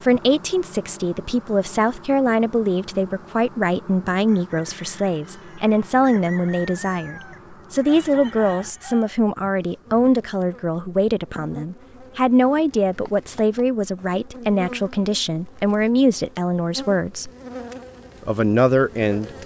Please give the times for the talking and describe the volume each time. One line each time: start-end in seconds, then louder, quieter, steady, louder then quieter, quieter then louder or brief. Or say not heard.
0.0-17.3 steady
18.2-19.4 brief.